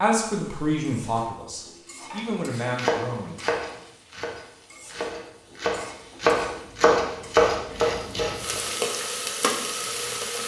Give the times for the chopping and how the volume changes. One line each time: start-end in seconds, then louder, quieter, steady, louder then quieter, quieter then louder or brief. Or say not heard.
2.1-8.6 quieter then louder.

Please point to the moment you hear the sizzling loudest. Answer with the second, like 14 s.
9 s.